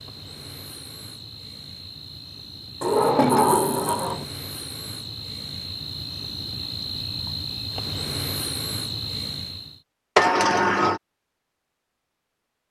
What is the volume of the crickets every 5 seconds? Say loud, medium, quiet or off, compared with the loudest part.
medium, loud, off.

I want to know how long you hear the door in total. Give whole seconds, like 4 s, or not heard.
2 s.